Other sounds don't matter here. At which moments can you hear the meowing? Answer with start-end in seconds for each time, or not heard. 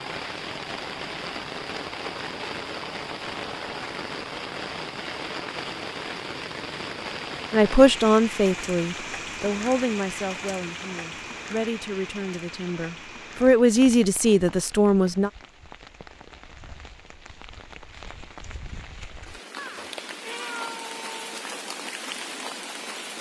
19.6-21.4.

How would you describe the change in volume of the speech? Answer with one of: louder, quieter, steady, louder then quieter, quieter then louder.
quieter then louder.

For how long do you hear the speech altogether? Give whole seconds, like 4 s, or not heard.
8 s.